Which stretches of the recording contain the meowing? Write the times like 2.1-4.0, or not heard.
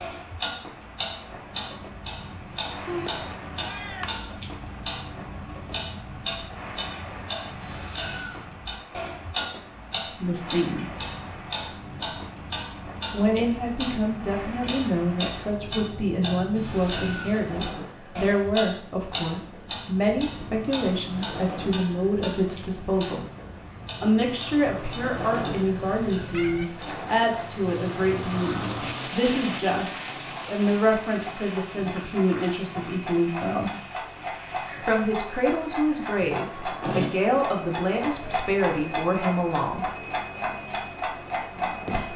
2.9-4.2, 24.8-26.6.